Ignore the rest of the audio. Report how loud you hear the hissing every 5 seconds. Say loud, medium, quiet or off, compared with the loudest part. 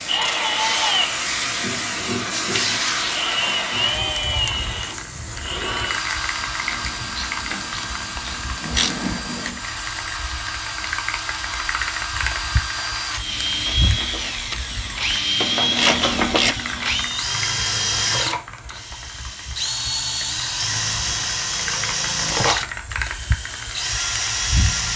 loud, medium, medium, medium, medium.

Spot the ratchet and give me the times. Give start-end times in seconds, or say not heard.
6.5-9.6, 13.5-17.1.